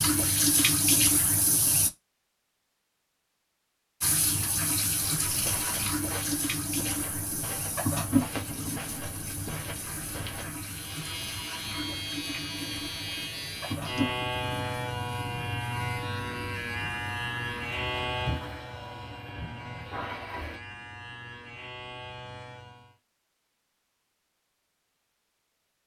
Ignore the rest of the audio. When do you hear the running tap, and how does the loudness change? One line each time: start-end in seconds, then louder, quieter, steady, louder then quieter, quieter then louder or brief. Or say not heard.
0.0-1.9 brief
4.0-20.6 quieter.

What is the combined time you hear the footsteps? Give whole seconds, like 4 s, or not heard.
5 s.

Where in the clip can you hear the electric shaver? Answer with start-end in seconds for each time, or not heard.
10.6-22.9.